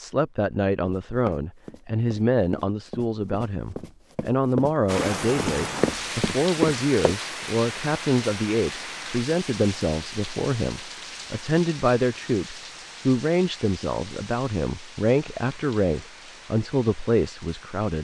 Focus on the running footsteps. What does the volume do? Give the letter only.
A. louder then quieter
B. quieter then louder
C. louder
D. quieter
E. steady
C.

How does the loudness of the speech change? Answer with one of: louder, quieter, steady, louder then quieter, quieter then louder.
steady.